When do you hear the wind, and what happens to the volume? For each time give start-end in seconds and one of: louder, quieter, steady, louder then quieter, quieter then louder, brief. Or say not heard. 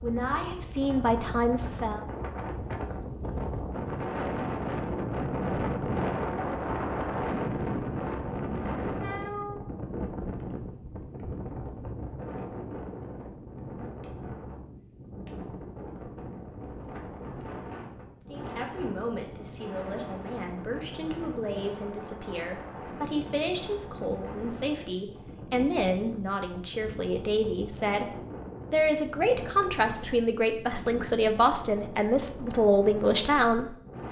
0.0-34.0 quieter.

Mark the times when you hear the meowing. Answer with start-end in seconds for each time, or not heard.
8.8-9.7.